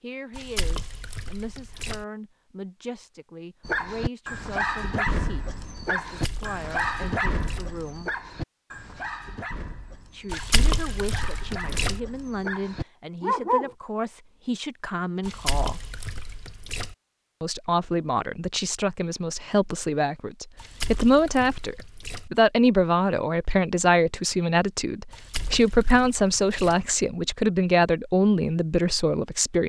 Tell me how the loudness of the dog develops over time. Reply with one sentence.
The volume of the dog goes down, then up.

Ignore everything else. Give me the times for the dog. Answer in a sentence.
You can hear the dog from 3.6 to 13.8 s.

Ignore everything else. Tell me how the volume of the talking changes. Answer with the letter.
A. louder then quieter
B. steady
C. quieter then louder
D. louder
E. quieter
D.